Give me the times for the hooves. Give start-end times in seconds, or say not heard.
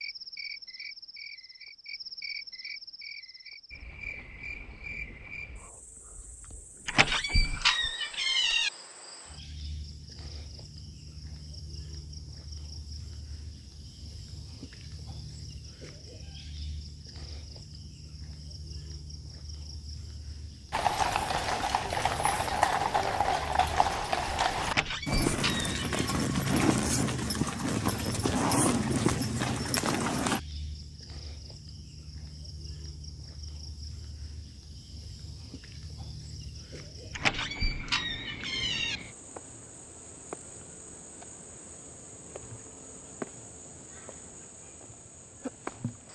20.7-30.4.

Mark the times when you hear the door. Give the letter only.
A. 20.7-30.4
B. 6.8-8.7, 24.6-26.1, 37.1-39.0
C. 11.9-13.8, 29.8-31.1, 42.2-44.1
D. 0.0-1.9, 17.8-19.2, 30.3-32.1
B.